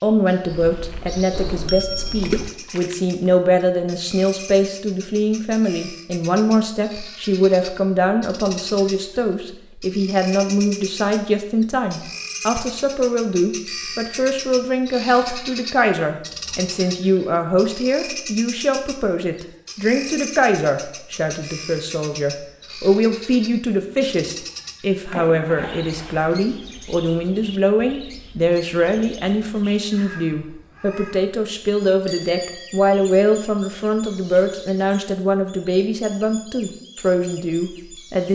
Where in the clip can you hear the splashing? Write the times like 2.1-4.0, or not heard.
2.2-3.1, 25.1-26.3.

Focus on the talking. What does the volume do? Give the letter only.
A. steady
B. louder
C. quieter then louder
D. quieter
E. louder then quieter
A.